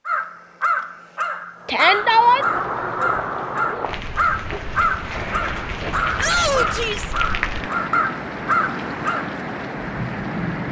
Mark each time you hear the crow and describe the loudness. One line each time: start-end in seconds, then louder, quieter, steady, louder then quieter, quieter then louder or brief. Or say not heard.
0.1-9.3 steady.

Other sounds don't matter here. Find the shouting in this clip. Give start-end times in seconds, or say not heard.
1.6-2.5, 6.2-7.1.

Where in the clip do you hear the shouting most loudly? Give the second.
2 s.